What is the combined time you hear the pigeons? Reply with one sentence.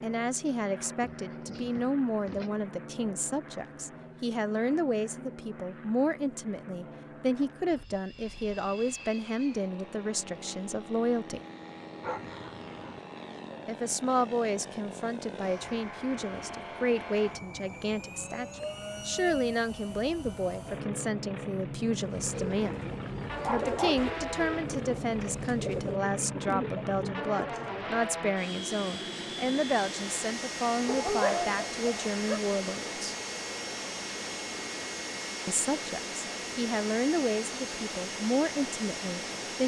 You can hear the pigeons for 6 seconds altogether.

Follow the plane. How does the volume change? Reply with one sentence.
The volume of the plane goes up.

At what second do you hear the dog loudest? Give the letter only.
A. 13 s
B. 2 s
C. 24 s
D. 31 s
D.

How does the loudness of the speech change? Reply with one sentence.
The loudness of the speech stays about the same.